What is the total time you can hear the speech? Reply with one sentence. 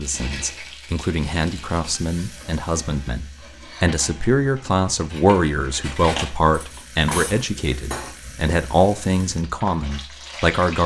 You can hear the speech for 11 seconds altogether.